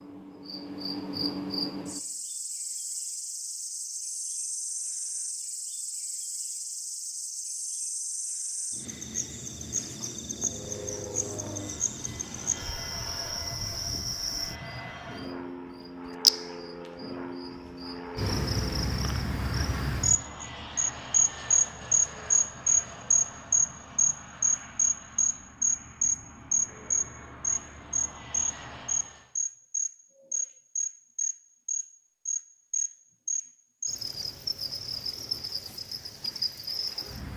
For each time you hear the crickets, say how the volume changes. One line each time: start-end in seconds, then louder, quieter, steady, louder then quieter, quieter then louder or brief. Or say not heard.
0.0-37.3 louder then quieter.